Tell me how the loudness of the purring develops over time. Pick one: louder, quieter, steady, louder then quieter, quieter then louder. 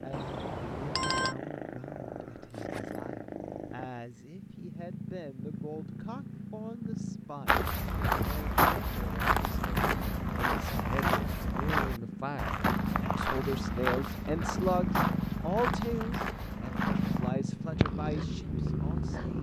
louder.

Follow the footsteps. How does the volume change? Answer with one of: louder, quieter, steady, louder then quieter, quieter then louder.
quieter.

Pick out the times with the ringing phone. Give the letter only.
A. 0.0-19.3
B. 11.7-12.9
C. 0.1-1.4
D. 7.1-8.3
C.